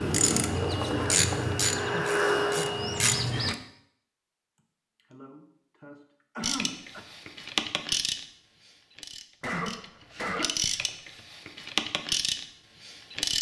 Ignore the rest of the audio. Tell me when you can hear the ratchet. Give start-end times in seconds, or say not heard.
0.0-3.5, 6.4-13.3.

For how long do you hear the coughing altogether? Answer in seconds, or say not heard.
5 s.